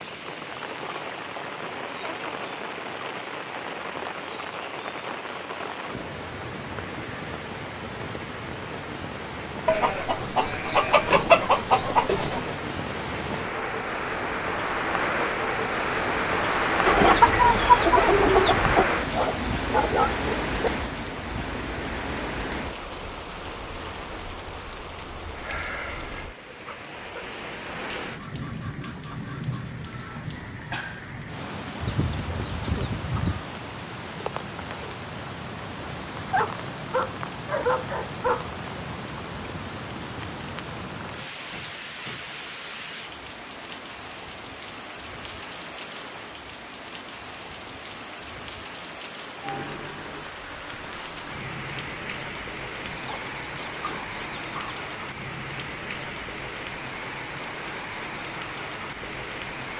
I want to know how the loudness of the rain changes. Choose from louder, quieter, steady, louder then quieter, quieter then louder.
louder then quieter.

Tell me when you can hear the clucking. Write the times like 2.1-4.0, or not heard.
9.7-12.5, 16.9-18.9, 31.8-33.5, 52.8-54.9.